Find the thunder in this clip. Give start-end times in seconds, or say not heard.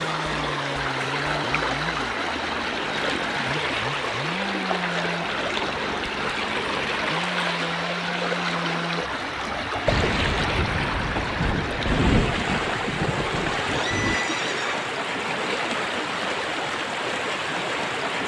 9.8-14.2.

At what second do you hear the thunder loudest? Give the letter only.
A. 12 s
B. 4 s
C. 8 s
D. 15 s
A.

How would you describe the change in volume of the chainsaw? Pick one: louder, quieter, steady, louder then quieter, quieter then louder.
steady.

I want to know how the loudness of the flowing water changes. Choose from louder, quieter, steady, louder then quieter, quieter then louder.
steady.